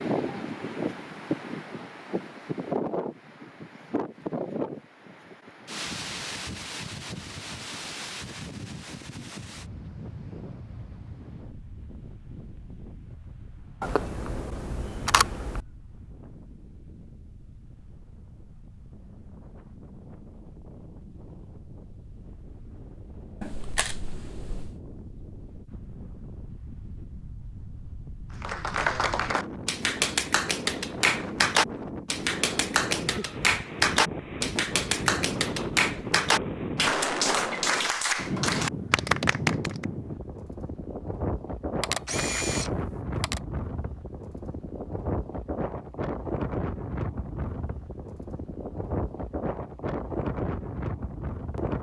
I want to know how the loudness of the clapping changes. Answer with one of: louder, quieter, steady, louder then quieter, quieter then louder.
steady.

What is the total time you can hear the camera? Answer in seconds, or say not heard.
5 s.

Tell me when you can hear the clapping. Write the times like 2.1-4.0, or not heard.
28.4-39.9.